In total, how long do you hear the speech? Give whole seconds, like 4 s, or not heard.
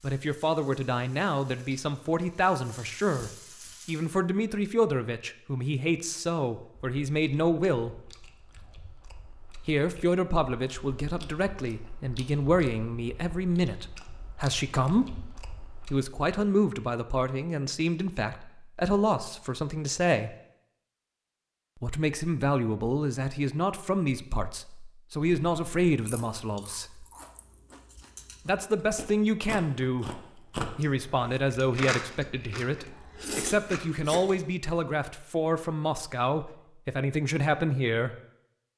33 s.